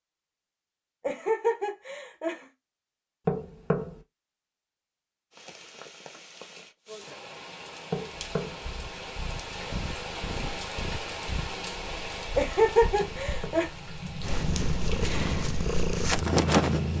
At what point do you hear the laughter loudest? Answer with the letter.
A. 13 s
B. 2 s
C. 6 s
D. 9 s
A.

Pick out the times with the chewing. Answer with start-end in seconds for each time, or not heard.
not heard.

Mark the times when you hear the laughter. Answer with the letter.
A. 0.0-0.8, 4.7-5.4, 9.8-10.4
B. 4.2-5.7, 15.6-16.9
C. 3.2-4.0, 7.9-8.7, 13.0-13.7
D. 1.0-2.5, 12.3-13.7
D.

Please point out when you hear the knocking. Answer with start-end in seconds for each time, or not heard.
3.2-4.0, 7.9-8.7, 13.0-13.7.